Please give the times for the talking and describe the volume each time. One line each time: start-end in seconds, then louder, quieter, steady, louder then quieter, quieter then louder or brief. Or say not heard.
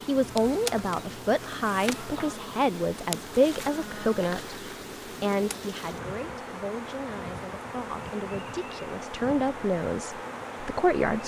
0.1-11.2 quieter then louder.